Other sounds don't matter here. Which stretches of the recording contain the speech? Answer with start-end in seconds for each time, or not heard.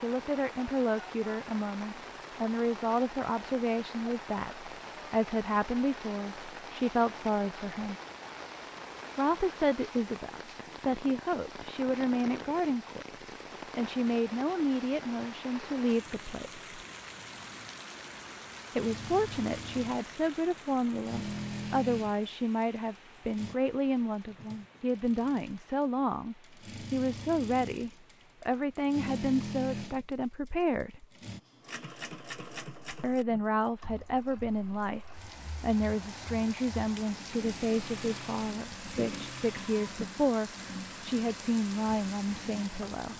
0.0-8.0, 9.2-16.6, 18.8-31.1, 33.0-43.1.